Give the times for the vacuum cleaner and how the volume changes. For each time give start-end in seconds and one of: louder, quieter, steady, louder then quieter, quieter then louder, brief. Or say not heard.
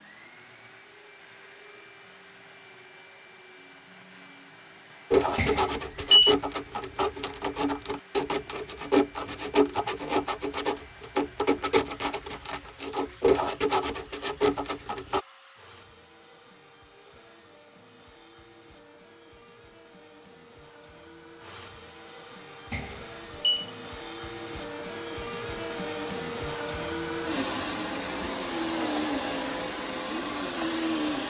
0.0-31.2 louder.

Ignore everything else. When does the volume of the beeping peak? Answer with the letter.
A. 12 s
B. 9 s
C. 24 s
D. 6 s
D.